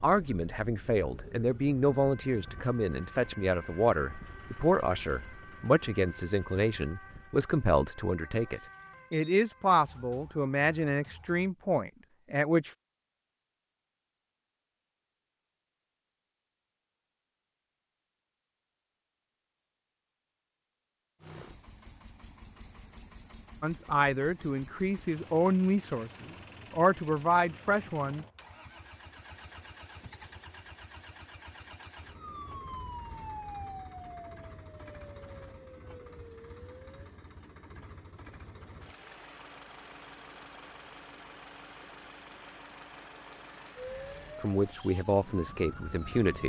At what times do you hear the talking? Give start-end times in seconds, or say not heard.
0.0-12.7, 23.6-28.2, 44.4-46.4.